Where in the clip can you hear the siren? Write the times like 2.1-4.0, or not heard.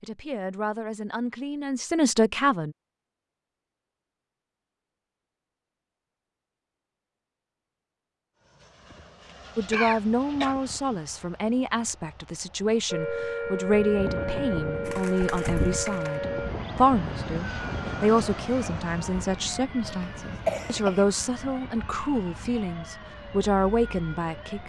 12.9-24.6.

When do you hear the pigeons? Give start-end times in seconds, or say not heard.
14.8-16.1.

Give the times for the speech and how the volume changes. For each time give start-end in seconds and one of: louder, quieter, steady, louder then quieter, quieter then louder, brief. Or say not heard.
0.0-2.8 brief
9.6-24.6 steady.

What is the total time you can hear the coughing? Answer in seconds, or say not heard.
2 s.